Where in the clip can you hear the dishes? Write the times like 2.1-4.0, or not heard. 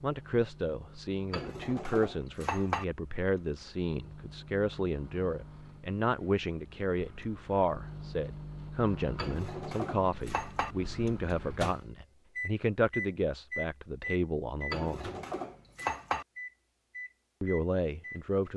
1.3-2.9, 9.2-10.8, 14.7-16.2.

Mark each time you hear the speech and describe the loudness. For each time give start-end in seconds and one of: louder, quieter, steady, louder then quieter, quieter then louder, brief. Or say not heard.
0.0-15.1 steady
17.4-18.5 brief.